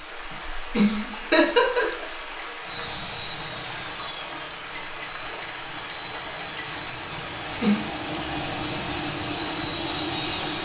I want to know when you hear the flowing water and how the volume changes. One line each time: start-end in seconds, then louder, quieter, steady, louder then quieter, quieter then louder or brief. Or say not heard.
0.0-10.6 steady.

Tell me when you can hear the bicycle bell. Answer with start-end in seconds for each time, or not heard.
4.7-7.0.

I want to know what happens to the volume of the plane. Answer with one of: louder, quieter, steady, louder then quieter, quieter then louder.
quieter then louder.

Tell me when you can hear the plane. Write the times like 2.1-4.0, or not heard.
2.6-10.6.